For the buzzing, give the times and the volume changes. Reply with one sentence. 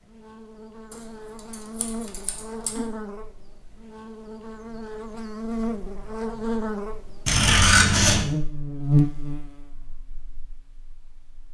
The buzzing can be heard from 0.0 to 11.4 s, getting louder.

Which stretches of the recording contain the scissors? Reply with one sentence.
The scissors can be heard from 0.9 to 2.9 s and from 7.2 to 8.2 s.